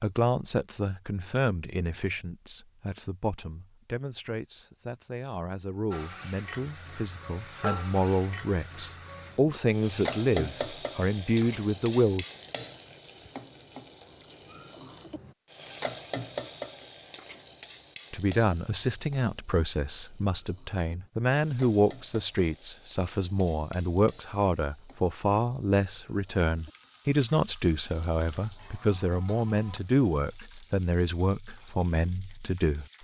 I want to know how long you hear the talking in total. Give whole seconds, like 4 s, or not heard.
27 s.